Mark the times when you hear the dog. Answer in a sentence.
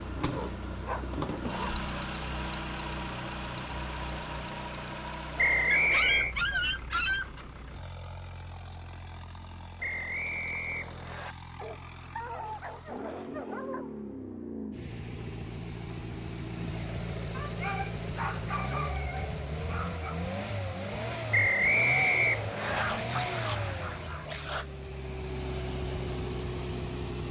You can hear the dog from 0.2 to 1.9 s, from 5.7 to 7.5 s, from 11.6 to 13.9 s, from 17.3 to 20.2 s and from 22.8 to 24.6 s.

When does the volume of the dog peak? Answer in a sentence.
The loudest moment of the dog is at 7 seconds.